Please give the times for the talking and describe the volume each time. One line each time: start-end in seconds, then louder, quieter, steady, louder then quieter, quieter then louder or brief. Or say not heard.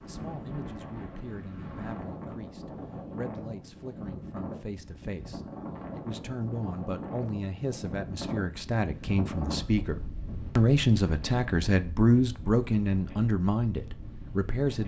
0.0-14.8 louder.